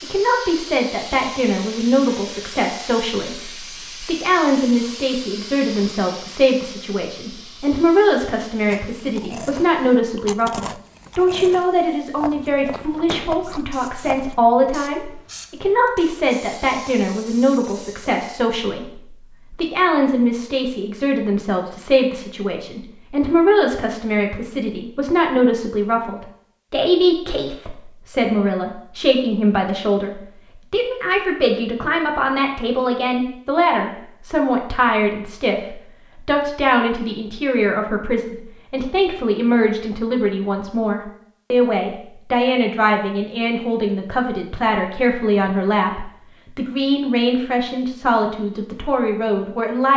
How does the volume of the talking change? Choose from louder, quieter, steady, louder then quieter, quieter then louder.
steady.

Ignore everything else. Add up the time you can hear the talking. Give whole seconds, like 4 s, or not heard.
50 s.